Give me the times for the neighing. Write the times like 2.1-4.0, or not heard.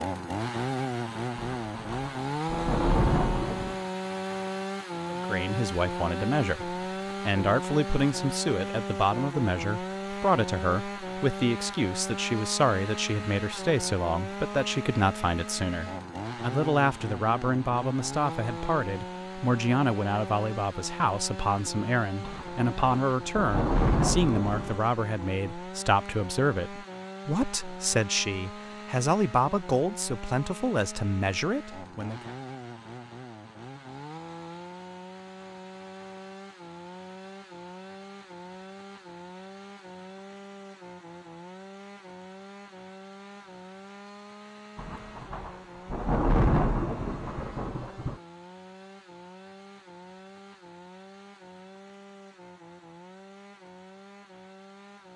not heard.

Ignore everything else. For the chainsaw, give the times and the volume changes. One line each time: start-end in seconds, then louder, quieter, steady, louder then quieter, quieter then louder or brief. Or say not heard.
0.0-55.1 quieter.